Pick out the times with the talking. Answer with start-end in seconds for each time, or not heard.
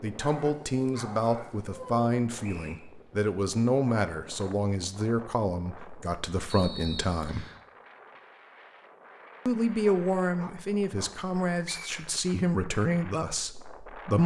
0.0-7.5, 9.4-14.2.